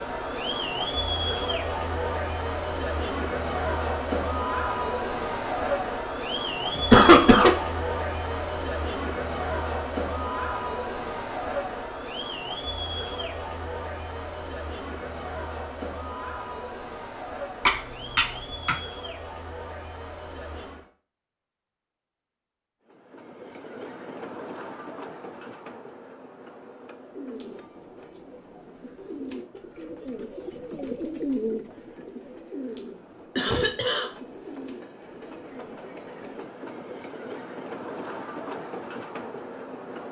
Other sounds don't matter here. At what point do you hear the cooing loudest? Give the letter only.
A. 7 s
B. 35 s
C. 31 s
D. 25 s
C.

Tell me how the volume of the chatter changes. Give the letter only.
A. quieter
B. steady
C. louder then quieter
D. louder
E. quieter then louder
A.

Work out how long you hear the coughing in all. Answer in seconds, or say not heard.
3 s.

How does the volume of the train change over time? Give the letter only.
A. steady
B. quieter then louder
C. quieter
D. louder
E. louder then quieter
B.